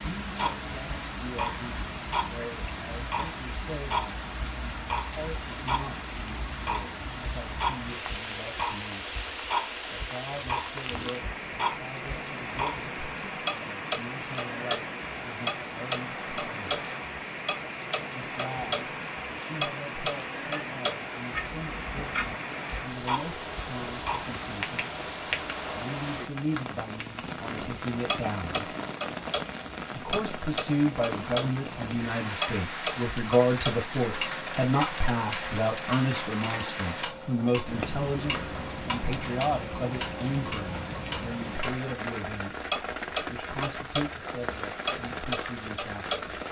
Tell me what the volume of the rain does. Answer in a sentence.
The loudness of the rain stays about the same.